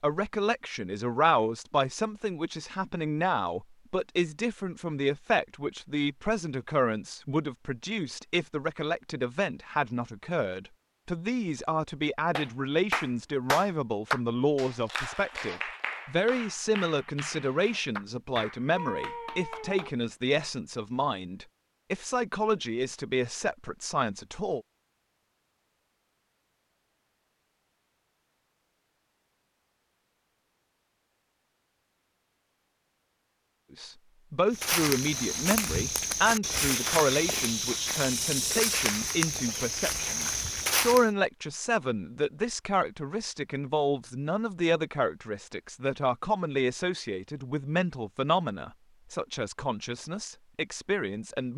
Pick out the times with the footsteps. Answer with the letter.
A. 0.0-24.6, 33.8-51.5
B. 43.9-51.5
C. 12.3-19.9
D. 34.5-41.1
D.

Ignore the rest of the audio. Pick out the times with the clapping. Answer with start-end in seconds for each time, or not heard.
12.3-19.9.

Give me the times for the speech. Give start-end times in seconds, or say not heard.
0.0-24.6, 33.8-51.5.